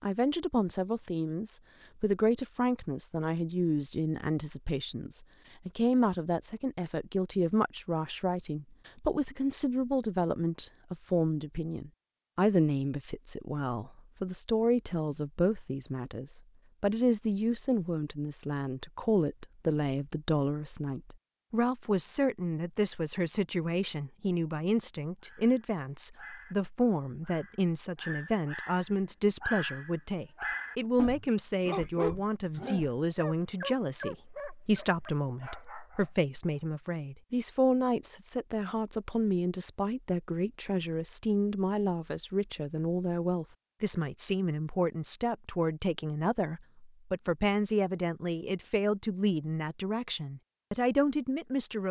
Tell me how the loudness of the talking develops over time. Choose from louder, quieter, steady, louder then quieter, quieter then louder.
steady.